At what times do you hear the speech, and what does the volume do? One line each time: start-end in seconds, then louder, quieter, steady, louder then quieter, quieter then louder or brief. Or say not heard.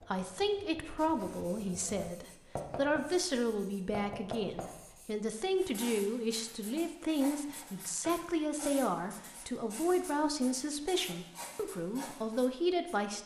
0.0-13.2 steady.